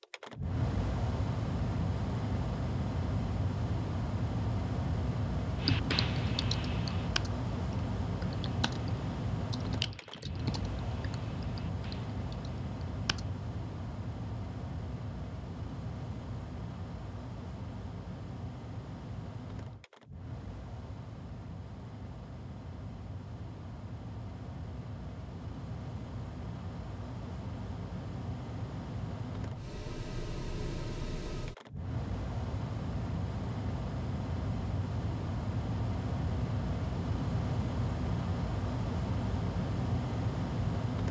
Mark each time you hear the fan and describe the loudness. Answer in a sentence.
You can hear the fan from 0.0 to 41.0 s, getting quieter then louder.